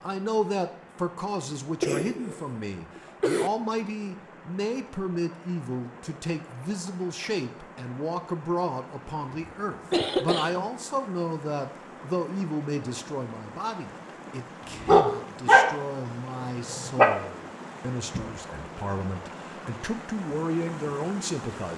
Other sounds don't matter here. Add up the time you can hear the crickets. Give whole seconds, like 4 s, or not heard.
not heard.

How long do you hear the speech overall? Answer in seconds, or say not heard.
22 s.